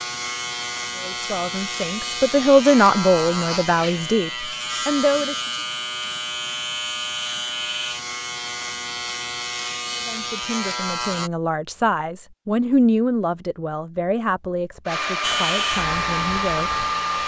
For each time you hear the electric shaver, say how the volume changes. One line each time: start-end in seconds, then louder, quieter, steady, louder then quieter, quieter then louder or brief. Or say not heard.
0.0-11.3 steady
15.2-17.2 brief.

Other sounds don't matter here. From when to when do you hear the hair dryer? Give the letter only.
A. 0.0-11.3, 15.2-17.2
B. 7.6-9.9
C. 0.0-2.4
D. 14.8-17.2
D.